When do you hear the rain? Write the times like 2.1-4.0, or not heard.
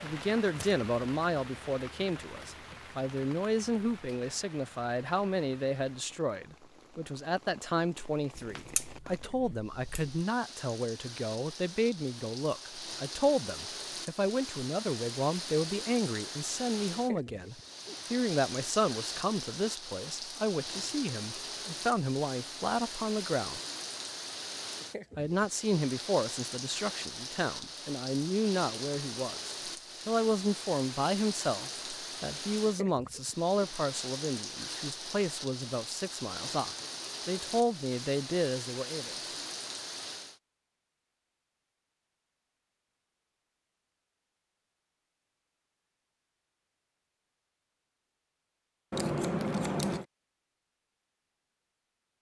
0.0-40.4.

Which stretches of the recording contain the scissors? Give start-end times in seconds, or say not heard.
8.3-10.1, 48.9-50.0.